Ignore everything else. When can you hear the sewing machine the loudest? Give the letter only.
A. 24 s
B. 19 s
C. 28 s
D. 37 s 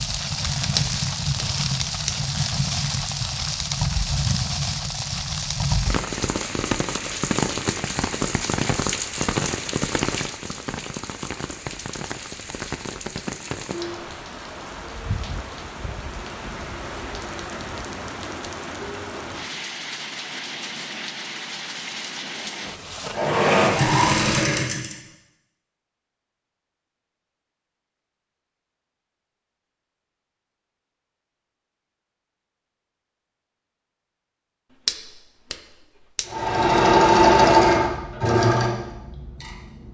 D.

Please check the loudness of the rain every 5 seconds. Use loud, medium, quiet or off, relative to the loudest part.
loud, loud, medium, medium, medium, off, off, off.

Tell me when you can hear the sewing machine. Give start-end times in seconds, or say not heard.
23.1-25.0, 36.2-39.8.